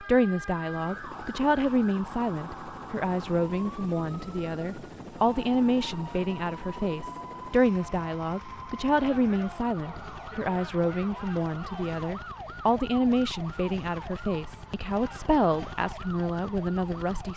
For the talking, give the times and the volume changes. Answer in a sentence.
The talking can be heard from 0.0 to 17.3 s, at a steady volume.